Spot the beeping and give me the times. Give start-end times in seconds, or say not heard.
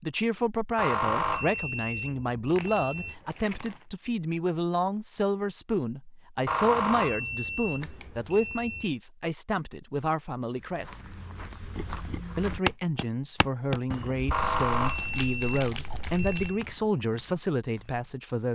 0.8-3.1, 6.5-8.9, 14.3-16.6.